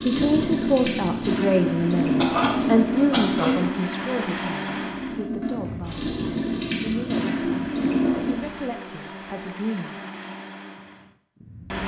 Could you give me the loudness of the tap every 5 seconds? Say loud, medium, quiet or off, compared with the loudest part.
loud, loud, off.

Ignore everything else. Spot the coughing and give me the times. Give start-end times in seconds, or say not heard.
2.1-3.6.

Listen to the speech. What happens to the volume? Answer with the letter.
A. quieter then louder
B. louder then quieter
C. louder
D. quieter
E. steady
D.